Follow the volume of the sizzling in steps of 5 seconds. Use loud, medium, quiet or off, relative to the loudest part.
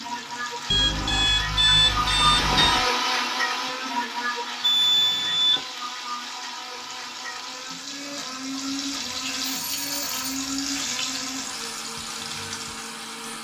medium, loud, loud.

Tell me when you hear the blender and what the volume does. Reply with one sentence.
You can hear the blender from 0.0 to 13.3 s, getting quieter.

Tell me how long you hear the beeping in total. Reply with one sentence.
The beeping can be heard for 4 seconds in total.